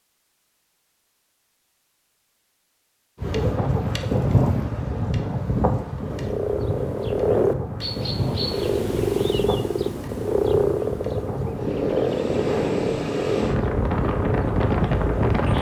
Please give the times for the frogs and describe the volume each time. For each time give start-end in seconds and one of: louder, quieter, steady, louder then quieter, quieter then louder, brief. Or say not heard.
6.0-15.5 quieter.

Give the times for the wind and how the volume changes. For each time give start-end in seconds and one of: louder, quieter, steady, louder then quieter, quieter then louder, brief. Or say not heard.
3.2-15.5 quieter then louder.